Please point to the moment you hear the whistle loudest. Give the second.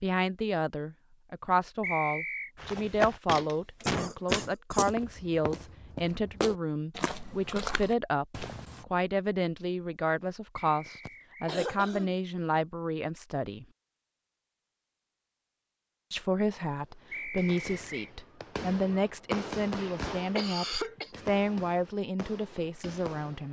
2 s.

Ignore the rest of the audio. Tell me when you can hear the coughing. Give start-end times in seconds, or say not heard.
3.8-4.9, 10.7-12.6, 19.8-21.1.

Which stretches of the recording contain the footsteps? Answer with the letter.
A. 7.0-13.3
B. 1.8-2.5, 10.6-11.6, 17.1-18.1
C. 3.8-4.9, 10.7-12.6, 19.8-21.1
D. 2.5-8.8
D.